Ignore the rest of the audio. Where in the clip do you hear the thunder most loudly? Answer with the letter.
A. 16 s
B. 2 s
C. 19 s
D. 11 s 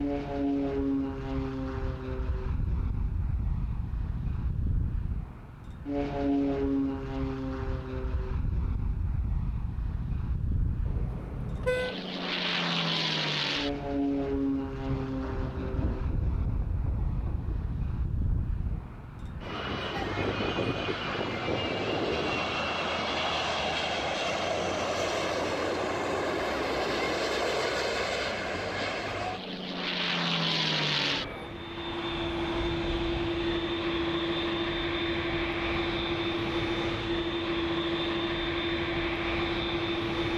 A.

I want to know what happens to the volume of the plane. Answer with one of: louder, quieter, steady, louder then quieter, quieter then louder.
steady.